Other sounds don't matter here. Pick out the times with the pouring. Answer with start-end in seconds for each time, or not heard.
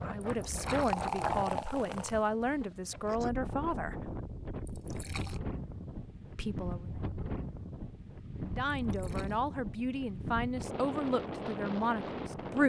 0.2-2.2, 4.7-5.4, 8.8-9.4.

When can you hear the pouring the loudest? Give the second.
1 s.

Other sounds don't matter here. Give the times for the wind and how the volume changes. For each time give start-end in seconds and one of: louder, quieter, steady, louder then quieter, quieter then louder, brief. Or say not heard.
0.0-12.6 steady.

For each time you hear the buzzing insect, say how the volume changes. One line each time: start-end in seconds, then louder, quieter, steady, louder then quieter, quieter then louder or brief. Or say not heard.
not heard.